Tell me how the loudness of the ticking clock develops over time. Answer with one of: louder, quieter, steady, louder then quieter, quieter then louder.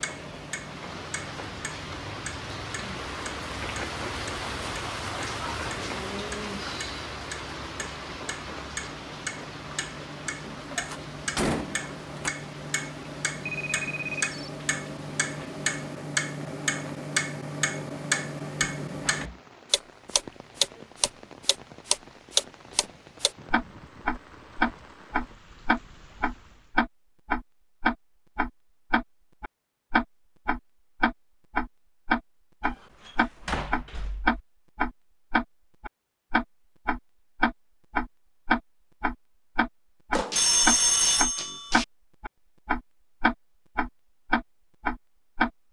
louder.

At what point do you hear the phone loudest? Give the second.
41 s.